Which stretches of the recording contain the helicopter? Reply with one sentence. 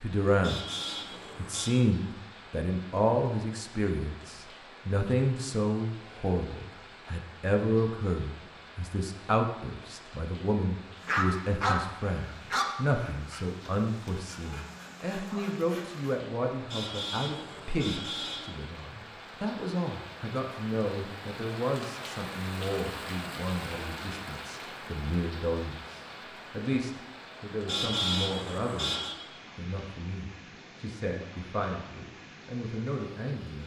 You can't hear the helicopter here.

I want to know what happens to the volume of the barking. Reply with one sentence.
The volume of the barking goes down.